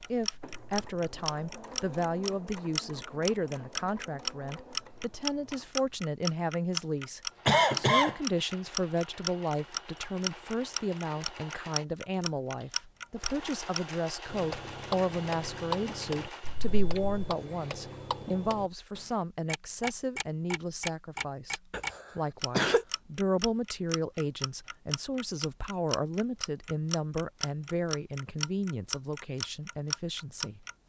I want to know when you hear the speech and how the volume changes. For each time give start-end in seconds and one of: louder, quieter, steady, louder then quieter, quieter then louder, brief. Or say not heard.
0.0-30.6 steady.